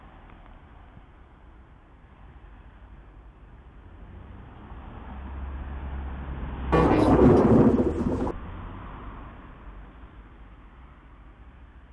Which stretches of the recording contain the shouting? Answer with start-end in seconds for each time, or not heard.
not heard.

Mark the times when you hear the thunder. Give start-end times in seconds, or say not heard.
6.7-8.3.